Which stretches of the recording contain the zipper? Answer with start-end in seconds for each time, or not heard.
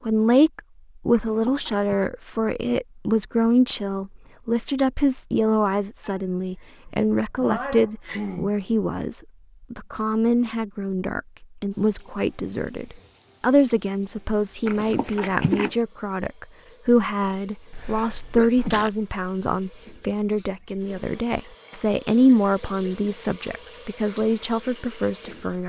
1.1-2.0, 14.7-15.8.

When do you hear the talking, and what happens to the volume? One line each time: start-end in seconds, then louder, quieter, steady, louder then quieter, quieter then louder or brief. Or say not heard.
0.1-25.6 steady.